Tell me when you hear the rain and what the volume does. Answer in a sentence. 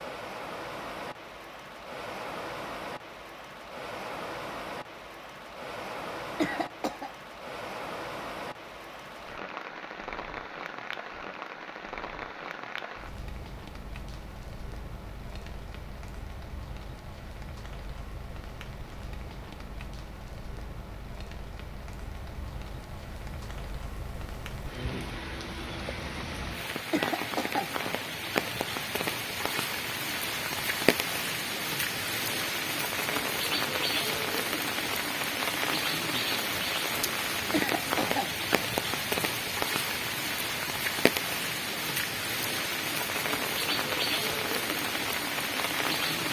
The rain can be heard from 0.0 to 46.2 s, getting louder.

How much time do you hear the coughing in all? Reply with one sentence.
The coughing can be heard for 2 seconds in total.